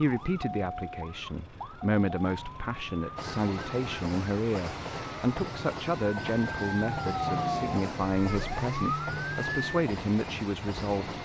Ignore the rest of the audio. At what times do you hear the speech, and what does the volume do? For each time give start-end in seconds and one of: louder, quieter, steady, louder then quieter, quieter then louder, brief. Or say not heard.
0.0-11.1 steady.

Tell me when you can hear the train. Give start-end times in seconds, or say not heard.
3.1-11.1.